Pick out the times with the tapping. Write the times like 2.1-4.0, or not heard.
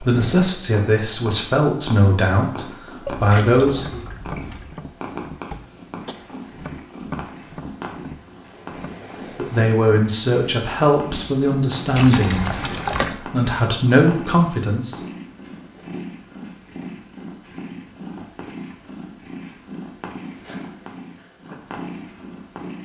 3.8-9.0.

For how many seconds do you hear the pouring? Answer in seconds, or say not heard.
3 s.